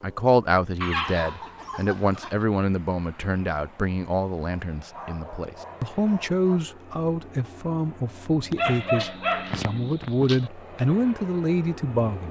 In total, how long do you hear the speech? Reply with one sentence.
You can hear the speech for 12 seconds altogether.